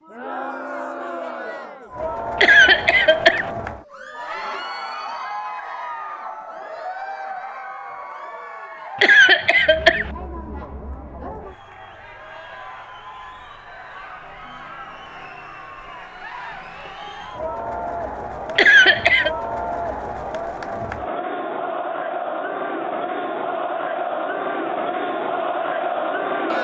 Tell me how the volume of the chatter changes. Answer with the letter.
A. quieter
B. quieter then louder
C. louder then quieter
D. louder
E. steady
B.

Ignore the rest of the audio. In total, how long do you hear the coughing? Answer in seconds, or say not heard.
3 s.